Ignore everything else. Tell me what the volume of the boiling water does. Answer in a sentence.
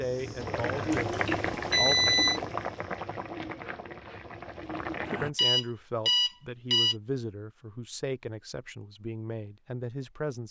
The volume of the boiling water goes down.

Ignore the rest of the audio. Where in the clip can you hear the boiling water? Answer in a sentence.
The boiling water can be heard from 0.0 to 5.3 s.